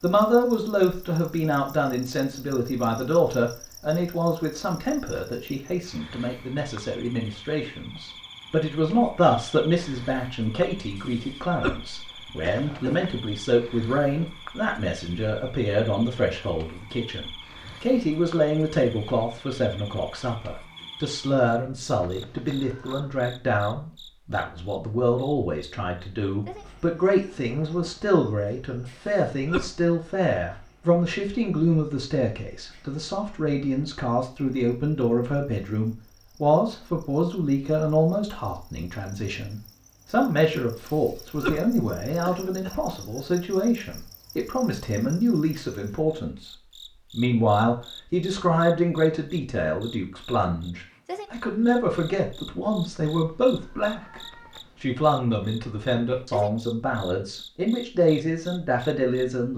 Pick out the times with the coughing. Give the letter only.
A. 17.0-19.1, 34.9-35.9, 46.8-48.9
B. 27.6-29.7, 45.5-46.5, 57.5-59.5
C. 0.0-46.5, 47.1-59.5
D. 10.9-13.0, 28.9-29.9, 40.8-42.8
D.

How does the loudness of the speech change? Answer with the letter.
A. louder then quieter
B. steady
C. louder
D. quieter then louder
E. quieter
B.